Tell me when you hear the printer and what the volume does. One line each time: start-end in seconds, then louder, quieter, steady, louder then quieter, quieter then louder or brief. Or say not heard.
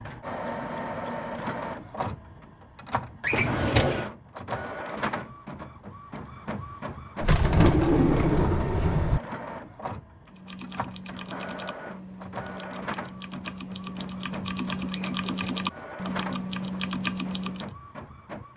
0.0-18.5 quieter.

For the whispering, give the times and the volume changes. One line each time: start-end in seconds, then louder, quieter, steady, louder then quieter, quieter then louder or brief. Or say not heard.
not heard.